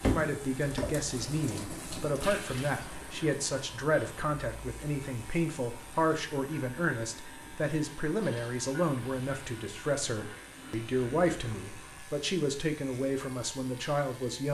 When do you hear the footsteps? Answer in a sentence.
You can't hear the footsteps here.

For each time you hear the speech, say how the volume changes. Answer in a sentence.
The speech can be heard from 0.0 to 14.4 s, at a steady volume.